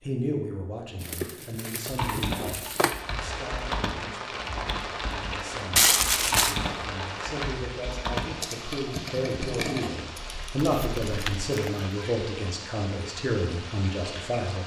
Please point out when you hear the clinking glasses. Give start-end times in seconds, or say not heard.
not heard.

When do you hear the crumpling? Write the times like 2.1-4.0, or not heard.
1.0-3.0, 5.8-6.5, 10.8-11.9.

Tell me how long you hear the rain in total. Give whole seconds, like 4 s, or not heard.
12 s.